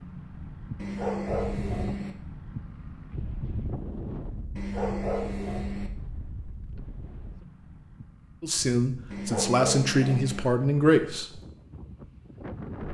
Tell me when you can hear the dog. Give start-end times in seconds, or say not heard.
0.8-2.1, 4.5-5.9, 9.1-10.4.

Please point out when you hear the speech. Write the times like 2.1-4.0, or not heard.
8.4-11.4.